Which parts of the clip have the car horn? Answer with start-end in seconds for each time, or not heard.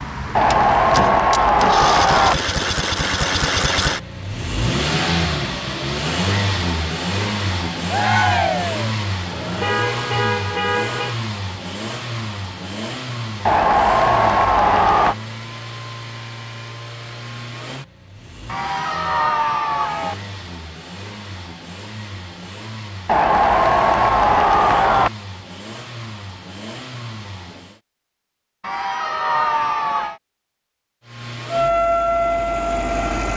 9.3-11.2.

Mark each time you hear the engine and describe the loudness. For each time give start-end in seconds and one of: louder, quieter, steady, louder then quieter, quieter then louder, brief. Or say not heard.
0.0-27.8 quieter
31.0-33.3 brief.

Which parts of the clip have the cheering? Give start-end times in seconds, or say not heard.
0.3-2.4, 7.9-8.9, 13.4-15.2, 18.4-20.1, 23.1-25.1, 28.6-30.1.